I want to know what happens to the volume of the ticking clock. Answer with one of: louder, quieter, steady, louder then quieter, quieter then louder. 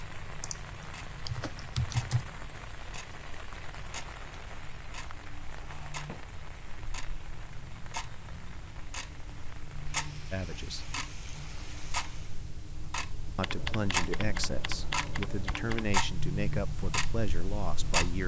louder.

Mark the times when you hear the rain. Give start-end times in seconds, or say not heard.
0.0-12.5.